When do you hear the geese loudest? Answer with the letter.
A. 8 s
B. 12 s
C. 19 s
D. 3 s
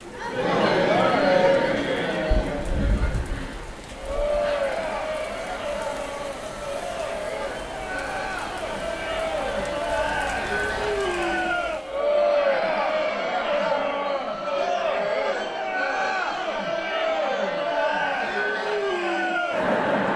D.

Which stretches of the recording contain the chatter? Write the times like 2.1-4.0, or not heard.
0.0-20.1.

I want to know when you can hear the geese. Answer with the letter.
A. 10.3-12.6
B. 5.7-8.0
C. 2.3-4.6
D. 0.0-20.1
C.